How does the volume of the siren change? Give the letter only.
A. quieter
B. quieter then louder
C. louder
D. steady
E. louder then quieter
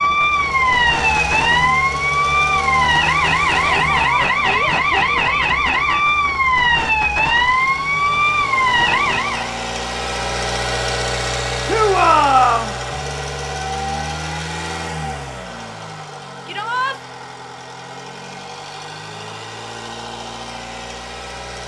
D.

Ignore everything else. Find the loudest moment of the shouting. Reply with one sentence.
The loudest moment of the shouting is at 12 seconds.